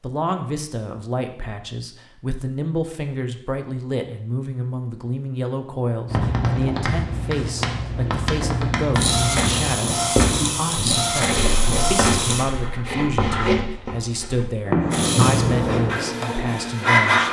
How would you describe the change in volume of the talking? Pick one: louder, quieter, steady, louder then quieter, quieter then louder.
steady.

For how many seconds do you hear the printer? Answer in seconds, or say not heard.
6 s.